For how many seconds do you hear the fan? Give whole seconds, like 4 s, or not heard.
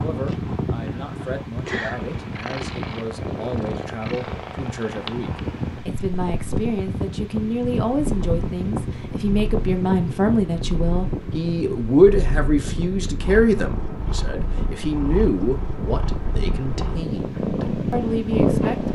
19 s.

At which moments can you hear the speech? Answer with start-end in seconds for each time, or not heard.
0.0-18.9.